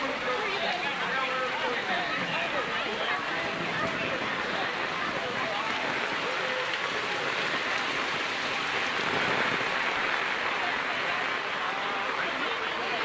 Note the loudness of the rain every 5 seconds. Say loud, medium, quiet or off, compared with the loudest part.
medium, loud, loud.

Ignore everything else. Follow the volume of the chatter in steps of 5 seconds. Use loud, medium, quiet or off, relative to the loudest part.
loud, medium, loud.